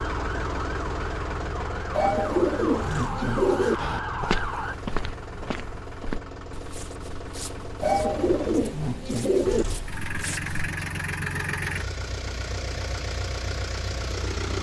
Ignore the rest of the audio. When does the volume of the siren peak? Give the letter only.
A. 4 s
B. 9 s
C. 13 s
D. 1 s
A.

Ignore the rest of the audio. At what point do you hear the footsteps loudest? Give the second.
4 s.